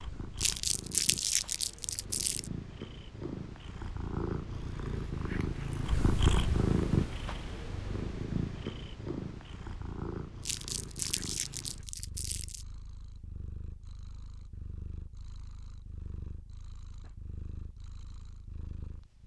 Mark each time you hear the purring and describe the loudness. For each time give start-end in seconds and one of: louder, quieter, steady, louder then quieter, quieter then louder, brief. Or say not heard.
0.0-19.2 louder then quieter.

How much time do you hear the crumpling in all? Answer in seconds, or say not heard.
4 s.